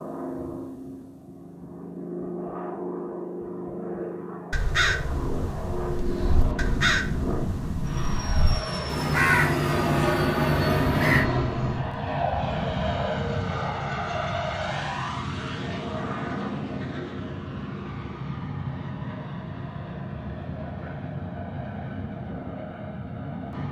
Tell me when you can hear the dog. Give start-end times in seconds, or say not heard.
not heard.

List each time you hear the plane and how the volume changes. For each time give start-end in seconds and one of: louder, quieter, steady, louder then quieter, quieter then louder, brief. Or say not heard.
0.0-23.6 louder then quieter.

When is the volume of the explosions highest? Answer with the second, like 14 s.
7 s.